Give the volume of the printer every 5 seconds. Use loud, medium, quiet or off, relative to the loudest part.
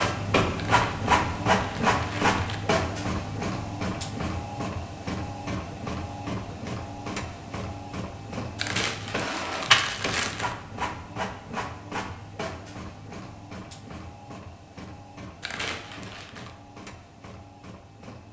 loud, loud, medium, quiet.